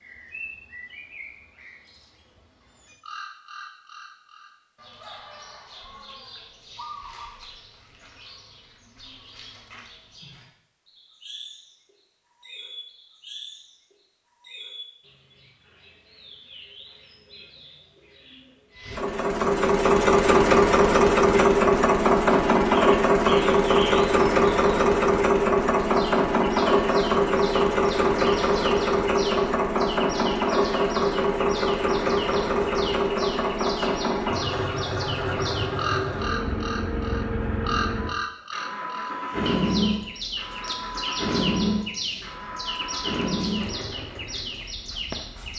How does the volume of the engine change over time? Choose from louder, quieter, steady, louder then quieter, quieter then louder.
quieter.